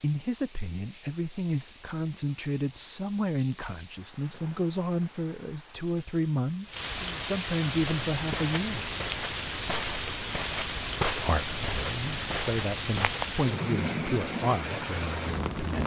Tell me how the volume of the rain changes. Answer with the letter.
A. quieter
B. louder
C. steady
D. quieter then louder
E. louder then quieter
B.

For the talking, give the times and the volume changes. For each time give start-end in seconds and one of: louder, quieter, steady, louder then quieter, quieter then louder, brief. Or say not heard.
0.0-8.8 steady
11.1-15.8 louder then quieter.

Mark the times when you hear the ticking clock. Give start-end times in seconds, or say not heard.
not heard.